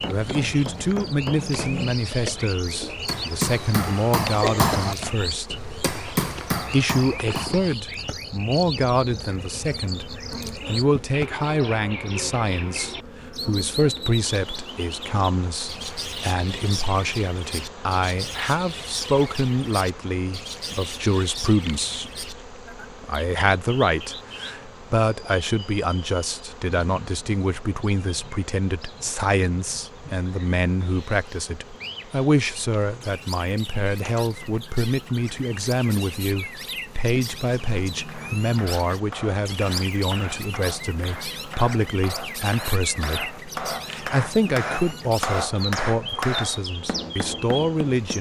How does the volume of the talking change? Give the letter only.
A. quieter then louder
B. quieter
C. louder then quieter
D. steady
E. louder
D.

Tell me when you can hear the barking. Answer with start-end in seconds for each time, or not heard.
not heard.